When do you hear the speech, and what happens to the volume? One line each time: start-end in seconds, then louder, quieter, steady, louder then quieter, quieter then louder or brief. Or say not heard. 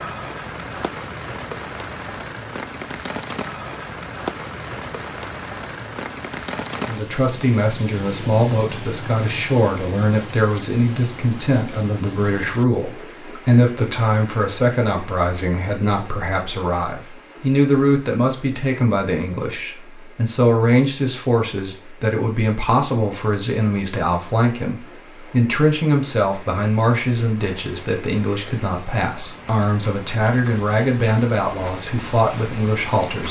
6.8-33.2 steady.